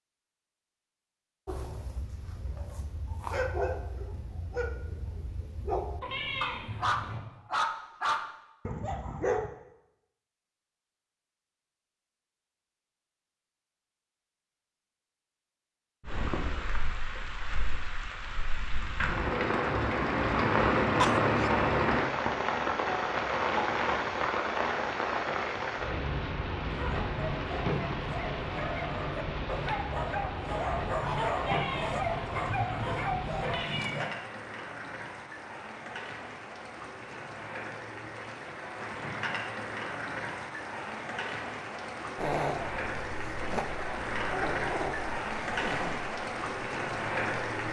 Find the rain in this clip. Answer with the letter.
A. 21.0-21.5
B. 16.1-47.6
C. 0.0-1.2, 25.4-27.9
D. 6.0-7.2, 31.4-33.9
B.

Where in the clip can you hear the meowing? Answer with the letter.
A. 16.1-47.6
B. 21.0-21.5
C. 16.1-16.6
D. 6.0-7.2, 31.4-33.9
D.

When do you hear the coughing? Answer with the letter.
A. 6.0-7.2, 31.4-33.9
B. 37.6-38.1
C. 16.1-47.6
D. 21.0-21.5
D.